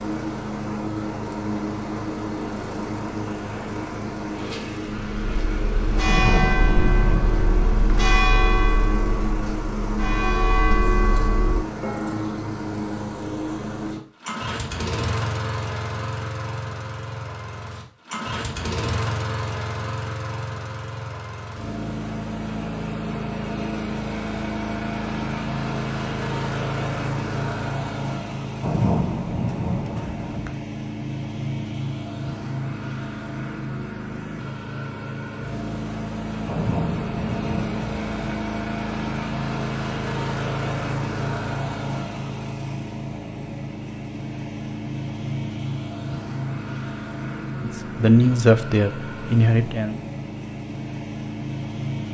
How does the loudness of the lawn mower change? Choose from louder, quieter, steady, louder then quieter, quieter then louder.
steady.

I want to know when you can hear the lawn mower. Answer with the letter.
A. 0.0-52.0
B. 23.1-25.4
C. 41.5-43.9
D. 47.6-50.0
A.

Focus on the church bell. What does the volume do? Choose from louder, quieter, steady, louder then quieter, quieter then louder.
steady.